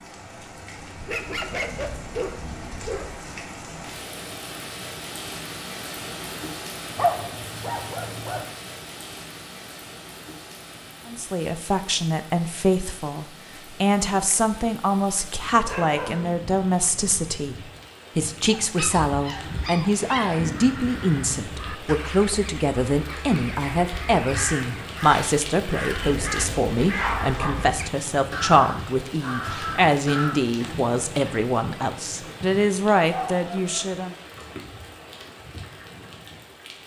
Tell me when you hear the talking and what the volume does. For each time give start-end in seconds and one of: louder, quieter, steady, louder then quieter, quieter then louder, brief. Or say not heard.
11.1-34.1 steady.